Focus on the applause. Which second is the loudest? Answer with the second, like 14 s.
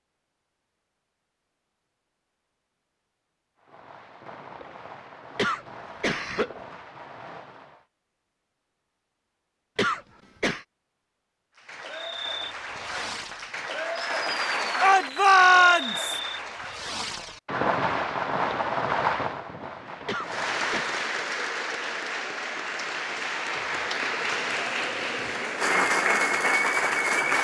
26 s.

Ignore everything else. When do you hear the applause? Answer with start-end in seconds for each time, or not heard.
11.6-16.9, 20.2-27.3.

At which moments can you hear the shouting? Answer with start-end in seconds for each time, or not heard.
14.8-16.1.